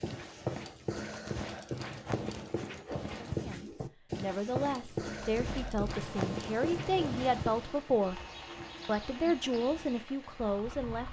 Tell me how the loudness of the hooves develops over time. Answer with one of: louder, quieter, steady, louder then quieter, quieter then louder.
quieter.